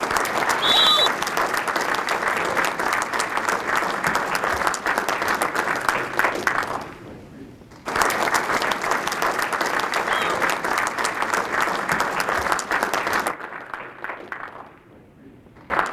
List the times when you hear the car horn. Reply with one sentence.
You can't hear the car horn here.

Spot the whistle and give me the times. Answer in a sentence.
The whistle can be heard from 0.3 to 1.1 s.